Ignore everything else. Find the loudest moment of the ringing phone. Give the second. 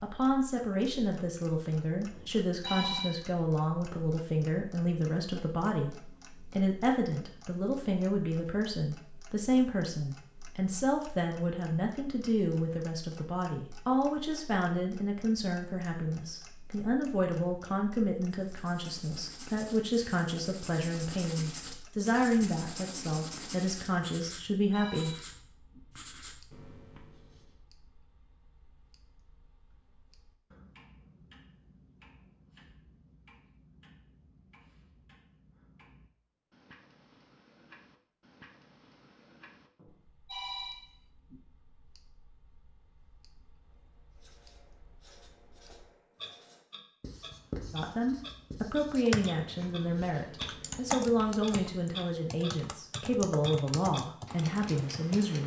3 s.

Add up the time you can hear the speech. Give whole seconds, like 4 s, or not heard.
33 s.